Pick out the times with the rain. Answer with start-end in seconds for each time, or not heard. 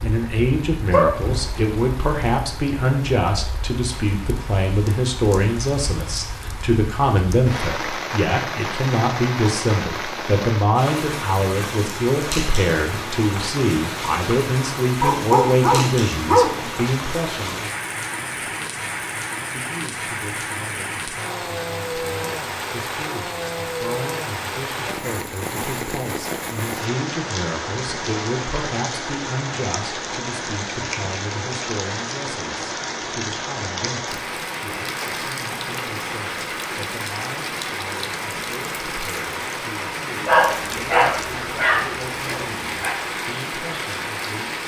0.0-44.6.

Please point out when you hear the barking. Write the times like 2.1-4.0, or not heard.
0.9-1.6, 15.0-16.8, 40.2-43.0.